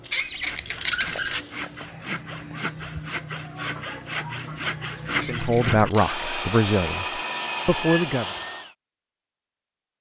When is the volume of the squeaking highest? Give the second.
1 s.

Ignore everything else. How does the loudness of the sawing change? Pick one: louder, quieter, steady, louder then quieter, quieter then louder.
louder.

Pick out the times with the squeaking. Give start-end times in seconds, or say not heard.
0.1-1.4, 5.2-6.5.